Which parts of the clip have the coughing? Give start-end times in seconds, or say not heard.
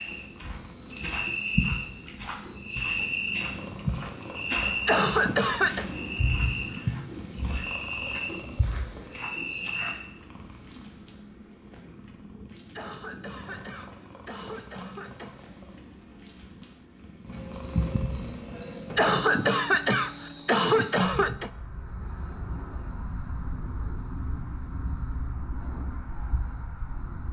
4.8-5.8, 12.8-15.4, 18.9-21.5.